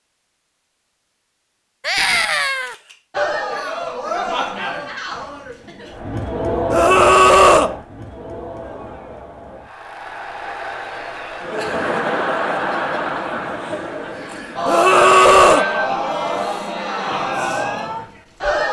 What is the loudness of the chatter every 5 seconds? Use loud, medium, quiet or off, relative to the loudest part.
loud, medium, loud, loud.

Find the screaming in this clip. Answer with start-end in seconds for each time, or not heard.
1.9-2.8, 6.7-7.7, 14.7-15.7.